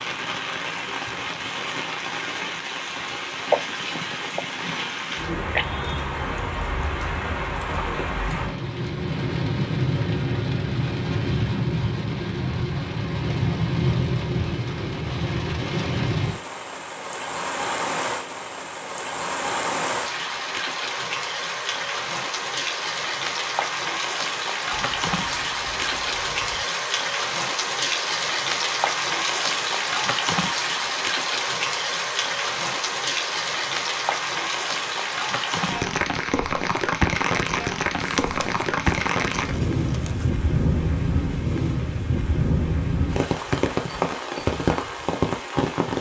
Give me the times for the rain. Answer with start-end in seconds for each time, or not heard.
0.0-45.9.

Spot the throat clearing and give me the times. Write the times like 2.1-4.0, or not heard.
not heard.